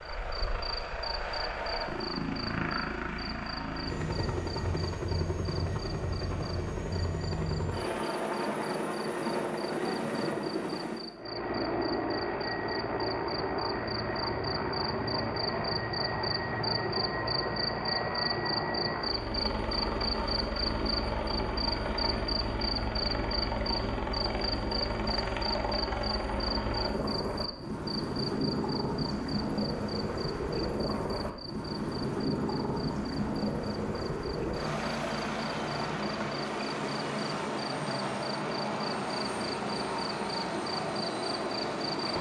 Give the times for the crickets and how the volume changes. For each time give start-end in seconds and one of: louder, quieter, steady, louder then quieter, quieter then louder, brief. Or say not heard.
0.0-42.1 louder then quieter.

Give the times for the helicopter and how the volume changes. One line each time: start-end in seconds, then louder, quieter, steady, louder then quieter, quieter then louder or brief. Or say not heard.
0.0-42.1 steady.